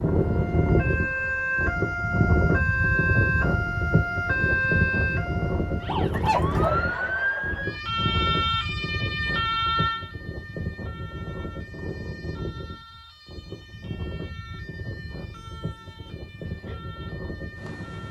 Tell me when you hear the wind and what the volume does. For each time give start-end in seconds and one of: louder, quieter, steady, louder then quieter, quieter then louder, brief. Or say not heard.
0.0-18.0 quieter.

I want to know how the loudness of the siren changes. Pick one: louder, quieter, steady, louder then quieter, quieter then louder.
quieter.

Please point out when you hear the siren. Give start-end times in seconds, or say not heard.
0.0-18.0.